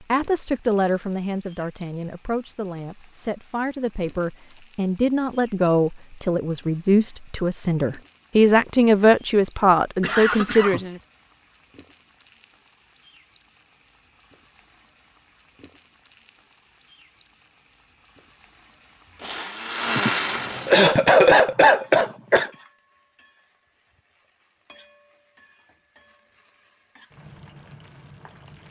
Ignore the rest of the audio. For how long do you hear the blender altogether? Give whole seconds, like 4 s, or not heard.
2 s.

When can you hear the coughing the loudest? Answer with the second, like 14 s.
21 s.